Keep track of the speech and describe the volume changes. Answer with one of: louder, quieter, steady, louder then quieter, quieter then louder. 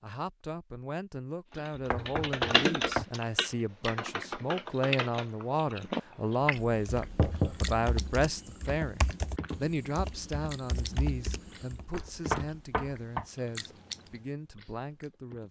louder then quieter.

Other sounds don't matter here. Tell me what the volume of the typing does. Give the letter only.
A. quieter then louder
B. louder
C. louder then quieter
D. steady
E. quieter
E.